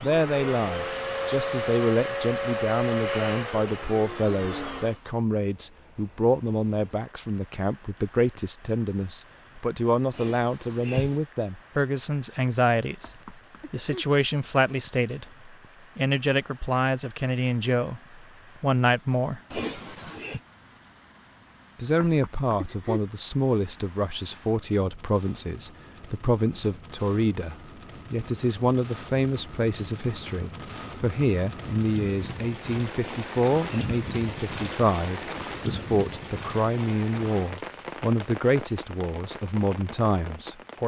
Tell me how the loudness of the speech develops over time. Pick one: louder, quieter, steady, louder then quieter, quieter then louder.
steady.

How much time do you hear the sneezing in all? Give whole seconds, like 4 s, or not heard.
3 s.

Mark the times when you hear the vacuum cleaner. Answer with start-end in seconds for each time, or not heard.
0.0-5.0.